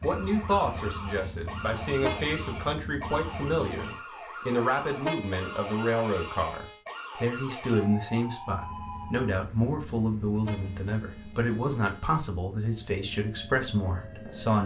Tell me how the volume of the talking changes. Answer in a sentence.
The loudness of the talking stays about the same.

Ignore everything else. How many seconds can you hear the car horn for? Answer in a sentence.
You can hear the car horn for 4 seconds altogether.